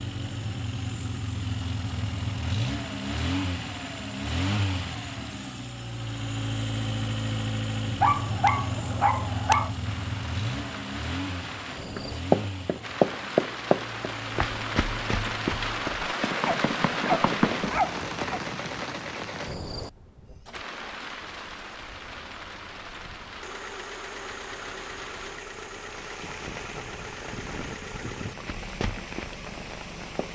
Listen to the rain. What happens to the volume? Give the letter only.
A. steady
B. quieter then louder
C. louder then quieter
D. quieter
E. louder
C.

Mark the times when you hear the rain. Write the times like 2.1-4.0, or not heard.
9.8-30.3.